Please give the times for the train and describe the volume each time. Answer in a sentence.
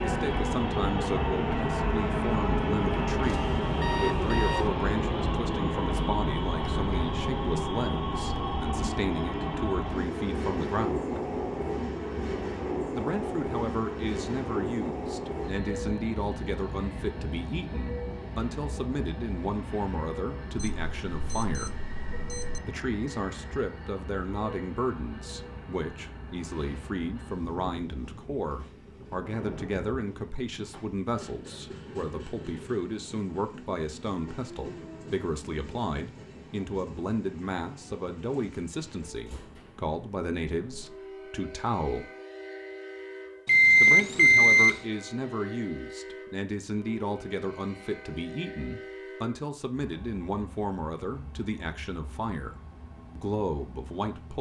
You can hear the train from 0.0 to 54.3 s, getting quieter.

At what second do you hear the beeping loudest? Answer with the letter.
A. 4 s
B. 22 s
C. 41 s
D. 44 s
D.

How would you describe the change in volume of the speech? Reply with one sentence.
The volume of the speech stays about the same.